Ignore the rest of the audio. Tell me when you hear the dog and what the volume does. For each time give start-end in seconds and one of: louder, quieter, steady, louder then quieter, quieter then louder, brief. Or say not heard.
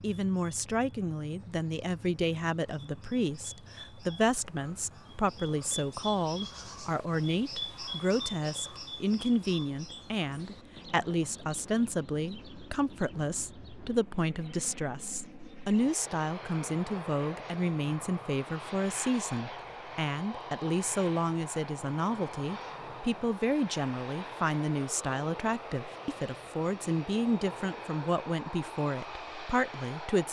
not heard.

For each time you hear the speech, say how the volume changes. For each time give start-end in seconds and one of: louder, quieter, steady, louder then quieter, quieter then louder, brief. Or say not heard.
0.0-30.2 steady.